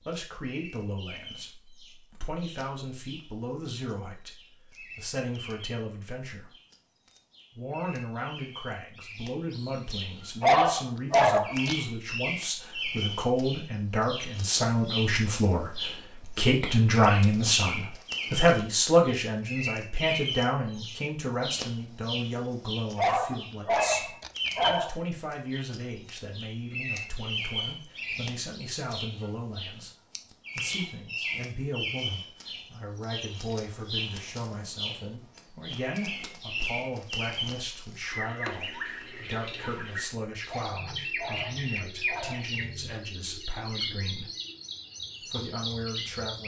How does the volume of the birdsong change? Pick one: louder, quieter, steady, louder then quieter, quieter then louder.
louder.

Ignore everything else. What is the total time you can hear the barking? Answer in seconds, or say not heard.
5 s.